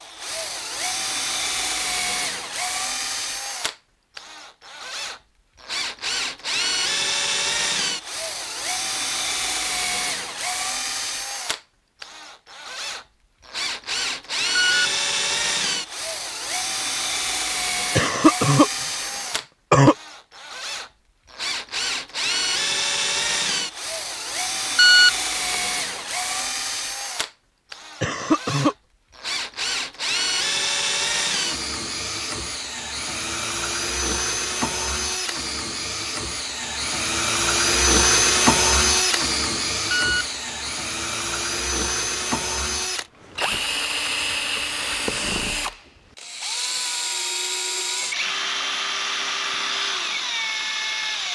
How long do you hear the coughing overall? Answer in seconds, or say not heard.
3 s.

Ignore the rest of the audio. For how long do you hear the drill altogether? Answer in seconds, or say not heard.
51 s.